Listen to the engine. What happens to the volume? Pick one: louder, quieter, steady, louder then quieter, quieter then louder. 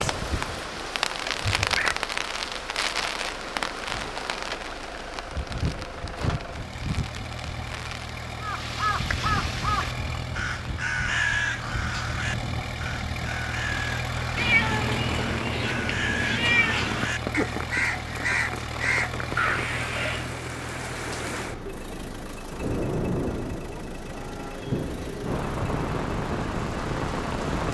louder then quieter.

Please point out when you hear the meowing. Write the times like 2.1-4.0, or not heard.
1.4-1.9, 14.3-17.1.